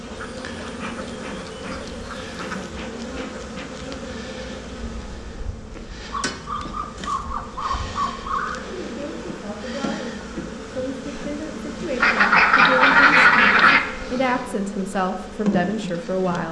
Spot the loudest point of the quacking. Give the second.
13 s.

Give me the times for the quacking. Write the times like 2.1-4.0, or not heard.
0.1-2.8, 6.1-8.7, 12.0-13.8.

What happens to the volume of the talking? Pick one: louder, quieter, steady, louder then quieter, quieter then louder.
louder.